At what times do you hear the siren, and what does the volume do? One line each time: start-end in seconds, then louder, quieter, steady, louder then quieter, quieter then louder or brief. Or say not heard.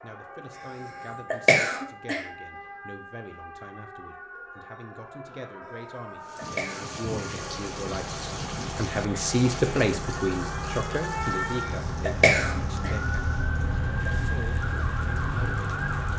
0.0-16.1 louder.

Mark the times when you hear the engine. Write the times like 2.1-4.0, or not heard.
7.3-16.1.